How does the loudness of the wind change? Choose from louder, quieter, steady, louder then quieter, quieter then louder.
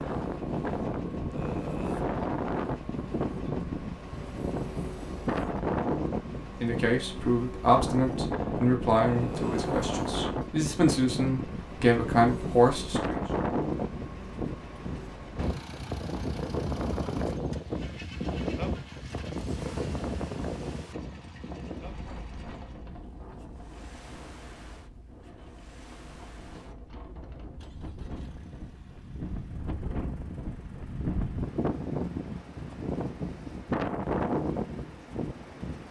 quieter then louder.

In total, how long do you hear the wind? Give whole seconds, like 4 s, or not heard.
36 s.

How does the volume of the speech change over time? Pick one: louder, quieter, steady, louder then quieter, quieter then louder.
quieter then louder.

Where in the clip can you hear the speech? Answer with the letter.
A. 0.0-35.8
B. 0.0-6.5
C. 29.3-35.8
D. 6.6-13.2
D.